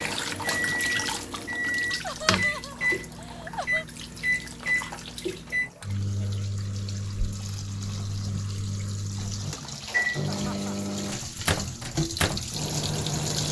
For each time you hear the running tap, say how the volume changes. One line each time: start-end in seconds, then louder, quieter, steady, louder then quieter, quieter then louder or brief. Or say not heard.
0.0-13.4 quieter then louder.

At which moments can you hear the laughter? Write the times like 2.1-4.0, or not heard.
2.0-3.9, 10.3-10.9.